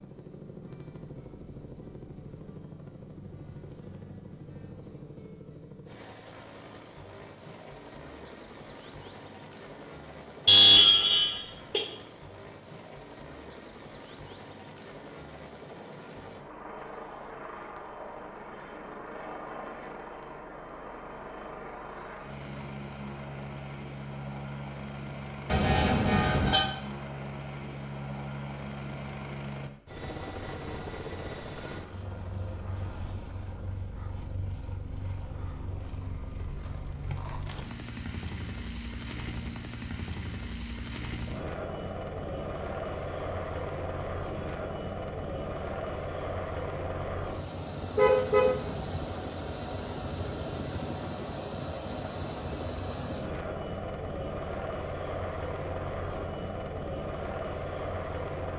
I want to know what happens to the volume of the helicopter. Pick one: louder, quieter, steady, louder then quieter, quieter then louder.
louder.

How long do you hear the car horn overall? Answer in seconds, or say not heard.
3 s.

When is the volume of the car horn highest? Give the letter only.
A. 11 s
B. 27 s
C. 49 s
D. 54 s
A.